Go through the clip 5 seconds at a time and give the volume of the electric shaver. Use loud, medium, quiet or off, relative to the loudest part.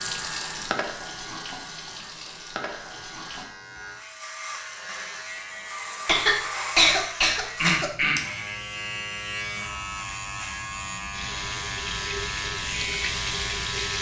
medium, loud, loud.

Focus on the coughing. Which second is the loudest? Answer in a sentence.
The volume of the coughing peaks at 7 seconds.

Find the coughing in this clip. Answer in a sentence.
The coughing can be heard from 6.0 to 8.4 s.